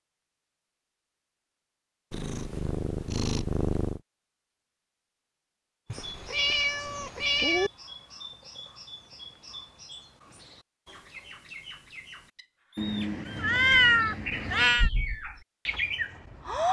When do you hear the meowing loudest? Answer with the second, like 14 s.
14 s.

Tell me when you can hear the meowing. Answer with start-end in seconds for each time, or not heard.
2.1-4.0, 5.9-7.7, 12.8-14.9.